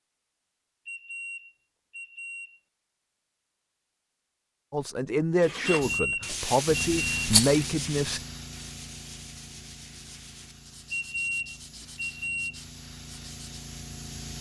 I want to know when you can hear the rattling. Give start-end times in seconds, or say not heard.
7.2-7.7.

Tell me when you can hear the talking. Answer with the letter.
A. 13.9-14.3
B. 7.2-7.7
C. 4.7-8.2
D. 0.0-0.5
C.